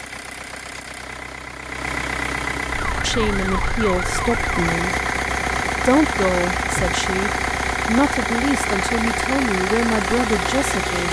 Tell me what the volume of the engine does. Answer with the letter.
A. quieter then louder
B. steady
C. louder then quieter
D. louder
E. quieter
D.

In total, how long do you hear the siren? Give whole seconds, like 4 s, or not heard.
2 s.